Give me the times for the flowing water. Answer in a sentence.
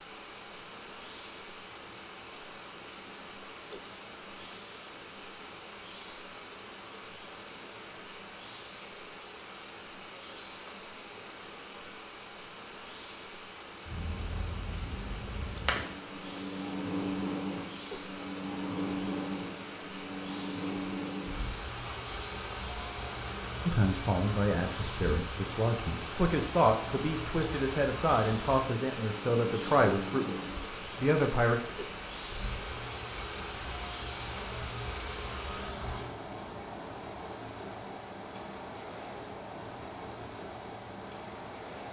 You can hear the flowing water from 0.0 to 41.8 s.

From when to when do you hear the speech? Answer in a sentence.
You can hear the speech from 23.6 to 31.6 s.